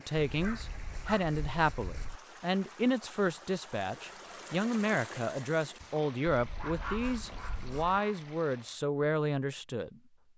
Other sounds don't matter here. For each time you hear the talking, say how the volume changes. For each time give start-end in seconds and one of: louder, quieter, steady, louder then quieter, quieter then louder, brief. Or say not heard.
0.0-10.0 steady.